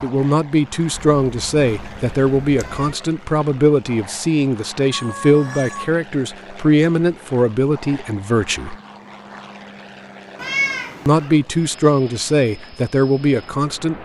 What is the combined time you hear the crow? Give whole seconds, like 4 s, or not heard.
not heard.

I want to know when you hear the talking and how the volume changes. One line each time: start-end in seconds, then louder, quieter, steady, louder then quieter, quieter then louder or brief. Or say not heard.
0.0-8.8 steady
11.1-14.0 brief.